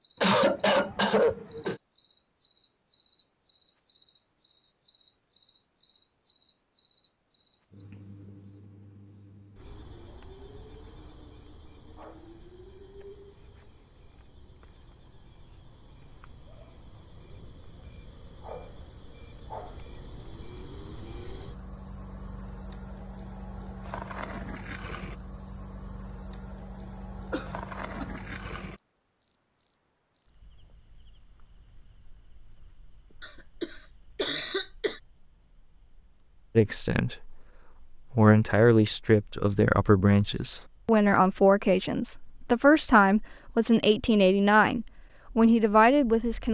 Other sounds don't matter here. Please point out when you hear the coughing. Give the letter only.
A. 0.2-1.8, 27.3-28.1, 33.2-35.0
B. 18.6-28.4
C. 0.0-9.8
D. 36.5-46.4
A.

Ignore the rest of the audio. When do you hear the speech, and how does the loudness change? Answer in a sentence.
You can hear the speech from 36.5 to 46.4 s, at a steady volume.